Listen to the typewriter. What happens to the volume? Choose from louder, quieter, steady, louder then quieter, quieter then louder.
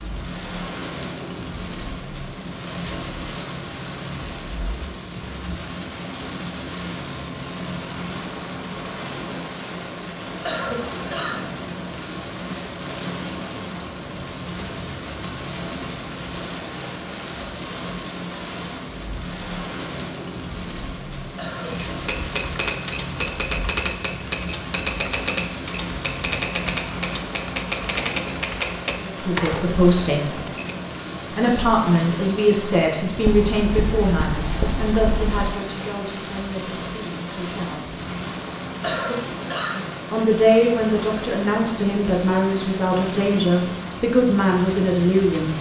steady.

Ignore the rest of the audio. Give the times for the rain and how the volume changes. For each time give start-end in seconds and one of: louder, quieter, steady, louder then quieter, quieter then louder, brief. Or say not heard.
0.0-45.5 steady.